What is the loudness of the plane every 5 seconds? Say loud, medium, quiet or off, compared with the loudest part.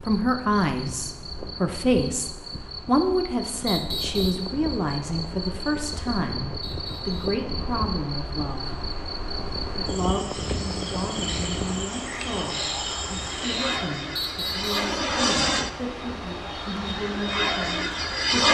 quiet, quiet, medium, loud.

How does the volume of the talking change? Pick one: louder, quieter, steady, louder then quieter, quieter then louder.
quieter.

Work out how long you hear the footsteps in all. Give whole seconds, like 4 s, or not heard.
not heard.